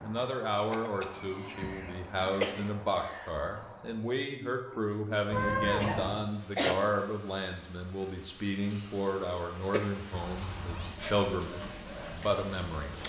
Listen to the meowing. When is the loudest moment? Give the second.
6 s.